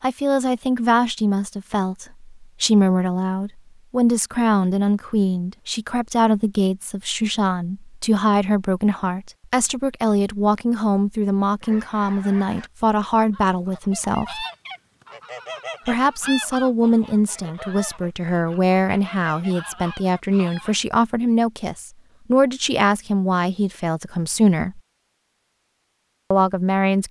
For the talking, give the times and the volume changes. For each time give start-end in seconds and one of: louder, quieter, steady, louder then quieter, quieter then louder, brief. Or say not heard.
0.0-14.4 steady
15.8-24.8 steady
26.3-27.0 brief.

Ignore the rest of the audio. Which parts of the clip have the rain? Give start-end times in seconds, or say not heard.
not heard.